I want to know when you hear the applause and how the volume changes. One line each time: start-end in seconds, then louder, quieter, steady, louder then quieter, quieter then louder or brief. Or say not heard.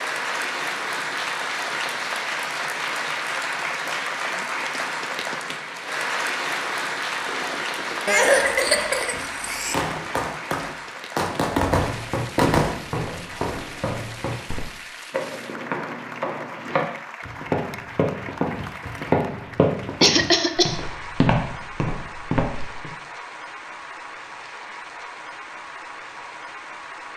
0.0-27.1 quieter.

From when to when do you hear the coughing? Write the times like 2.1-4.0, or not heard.
8.1-9.8, 20.0-20.8.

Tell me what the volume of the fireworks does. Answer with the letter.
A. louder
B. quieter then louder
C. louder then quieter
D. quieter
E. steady
A.